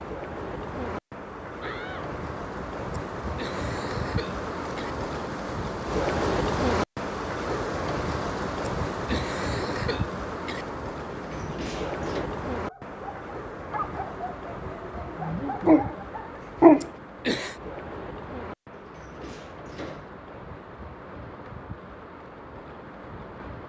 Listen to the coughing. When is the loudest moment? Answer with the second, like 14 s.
17 s.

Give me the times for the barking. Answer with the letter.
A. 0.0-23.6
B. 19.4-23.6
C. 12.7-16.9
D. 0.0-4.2
C.